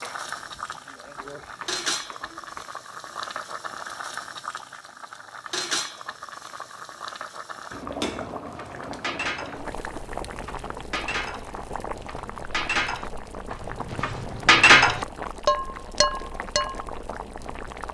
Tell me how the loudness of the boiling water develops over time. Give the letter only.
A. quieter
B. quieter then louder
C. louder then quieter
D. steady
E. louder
D.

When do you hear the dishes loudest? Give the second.
15 s.